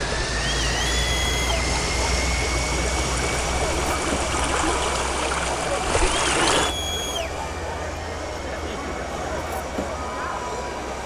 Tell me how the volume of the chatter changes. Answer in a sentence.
The volume of the chatter stays about the same.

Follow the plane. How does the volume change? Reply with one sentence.
The loudness of the plane goes down.